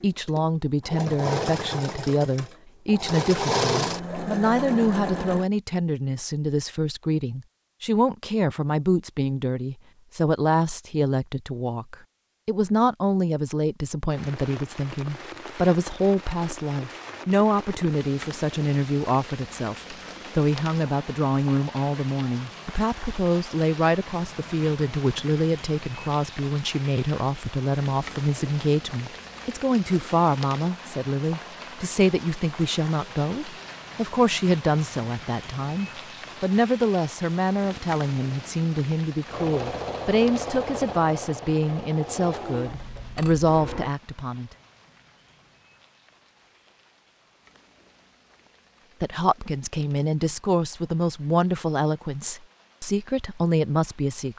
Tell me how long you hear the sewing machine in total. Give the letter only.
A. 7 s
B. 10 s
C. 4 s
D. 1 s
B.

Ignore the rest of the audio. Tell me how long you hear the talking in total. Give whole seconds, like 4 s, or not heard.
50 s.